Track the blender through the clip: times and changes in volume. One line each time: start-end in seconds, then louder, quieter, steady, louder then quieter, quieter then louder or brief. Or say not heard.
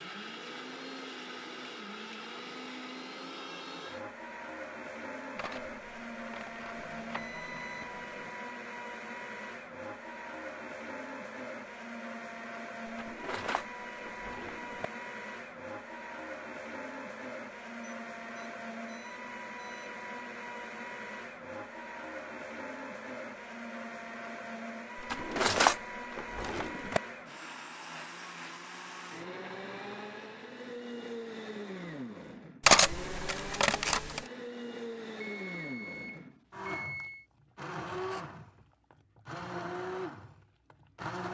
0.0-41.2 steady.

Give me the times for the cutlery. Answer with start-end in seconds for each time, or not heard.
5.3-7.4, 12.8-14.8, 25.0-27.0, 32.6-34.2.